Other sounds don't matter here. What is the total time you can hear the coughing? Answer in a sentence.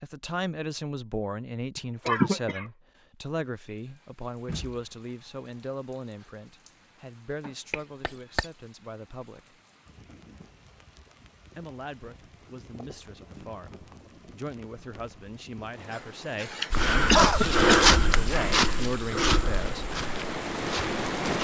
You can hear the coughing for 4 seconds altogether.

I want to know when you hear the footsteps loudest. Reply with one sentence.
The volume of the footsteps peaks at 18 seconds.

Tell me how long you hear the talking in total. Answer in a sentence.
The talking can be heard for 18 seconds in total.